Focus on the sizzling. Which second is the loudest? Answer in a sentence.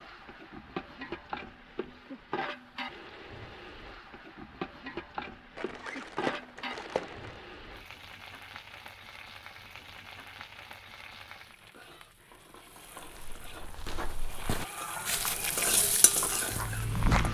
The volume of the sizzling peaks at 16 seconds.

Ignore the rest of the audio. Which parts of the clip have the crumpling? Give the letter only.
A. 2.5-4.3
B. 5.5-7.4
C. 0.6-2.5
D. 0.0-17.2
B.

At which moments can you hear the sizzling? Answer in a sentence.
The sizzling can be heard from 0.0 to 17.2 s.